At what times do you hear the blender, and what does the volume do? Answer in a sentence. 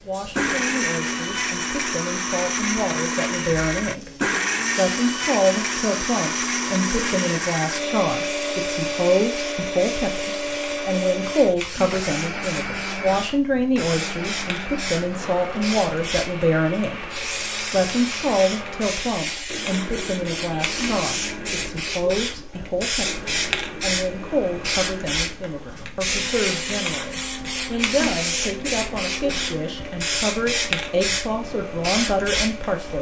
You can hear the blender from 0.0 to 32.9 s, getting quieter.